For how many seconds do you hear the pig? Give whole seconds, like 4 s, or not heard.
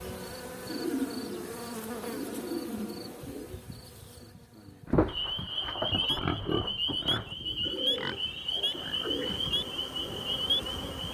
5 s.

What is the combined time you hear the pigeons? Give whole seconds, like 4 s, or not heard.
5 s.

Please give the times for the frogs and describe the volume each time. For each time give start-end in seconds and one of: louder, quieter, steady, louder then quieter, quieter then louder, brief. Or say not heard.
5.0-11.0 steady.